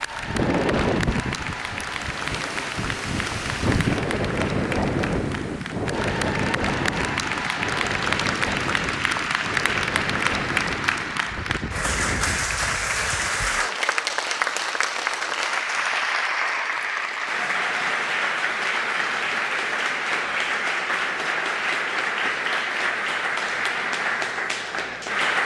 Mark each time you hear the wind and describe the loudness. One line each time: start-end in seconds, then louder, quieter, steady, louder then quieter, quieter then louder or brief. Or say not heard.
0.0-13.4 quieter.